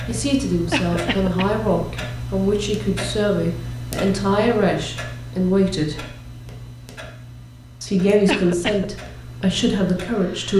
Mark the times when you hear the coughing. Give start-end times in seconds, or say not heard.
0.7-1.5, 8.2-8.8.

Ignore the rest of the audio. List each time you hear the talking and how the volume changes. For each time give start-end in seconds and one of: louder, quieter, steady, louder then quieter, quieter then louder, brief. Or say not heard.
0.1-6.1 steady
7.8-10.5 brief.